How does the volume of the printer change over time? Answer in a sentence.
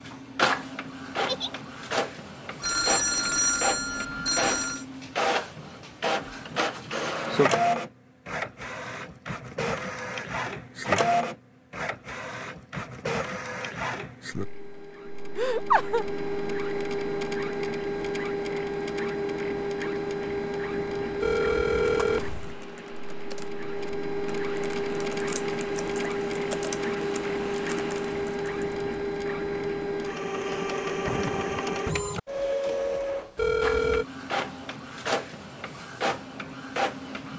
The loudness of the printer stays about the same.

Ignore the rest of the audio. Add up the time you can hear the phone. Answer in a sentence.
The phone can be heard for 4 seconds in total.